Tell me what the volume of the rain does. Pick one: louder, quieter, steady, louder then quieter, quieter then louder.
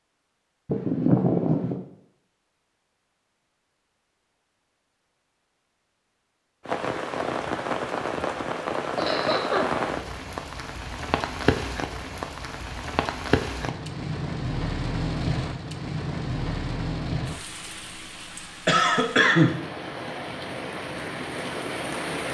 quieter.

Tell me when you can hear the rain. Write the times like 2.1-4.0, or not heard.
6.7-22.2.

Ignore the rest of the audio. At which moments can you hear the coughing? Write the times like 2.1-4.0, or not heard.
0.7-1.8, 8.9-9.7, 18.6-19.6.